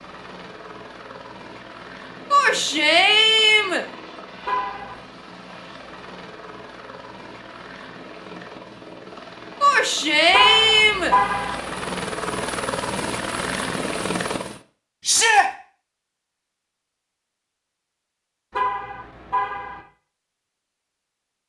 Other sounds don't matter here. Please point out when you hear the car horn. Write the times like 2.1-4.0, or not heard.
4.5-5.0, 10.3-11.6, 18.5-19.8.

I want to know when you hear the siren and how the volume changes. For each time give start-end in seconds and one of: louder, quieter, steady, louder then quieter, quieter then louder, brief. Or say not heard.
not heard.